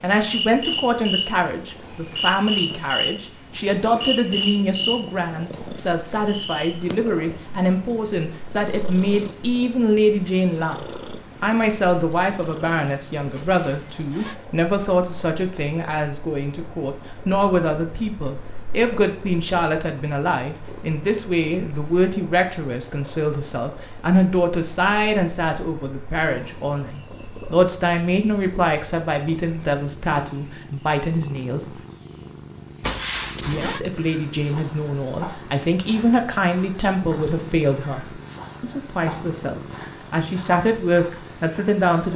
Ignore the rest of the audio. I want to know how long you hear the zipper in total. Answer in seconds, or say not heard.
2 s.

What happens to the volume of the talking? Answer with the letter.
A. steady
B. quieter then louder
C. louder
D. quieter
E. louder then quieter
A.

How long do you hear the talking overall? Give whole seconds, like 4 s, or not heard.
40 s.